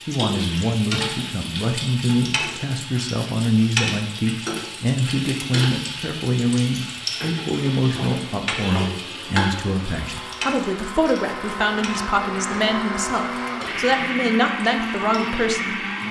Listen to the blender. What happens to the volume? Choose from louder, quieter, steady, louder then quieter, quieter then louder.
louder.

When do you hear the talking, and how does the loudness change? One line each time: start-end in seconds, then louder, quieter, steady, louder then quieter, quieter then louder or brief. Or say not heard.
0.1-15.8 steady.